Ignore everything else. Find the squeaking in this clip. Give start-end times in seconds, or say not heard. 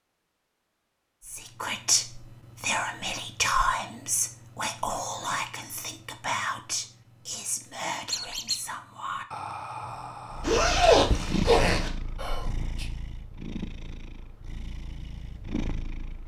8.1-8.6.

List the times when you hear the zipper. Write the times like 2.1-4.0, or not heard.
10.4-11.9.